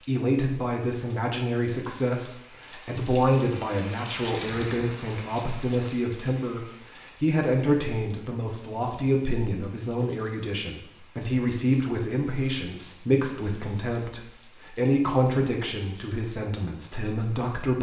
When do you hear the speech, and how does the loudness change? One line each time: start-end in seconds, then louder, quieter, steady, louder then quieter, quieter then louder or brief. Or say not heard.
0.1-17.7 steady.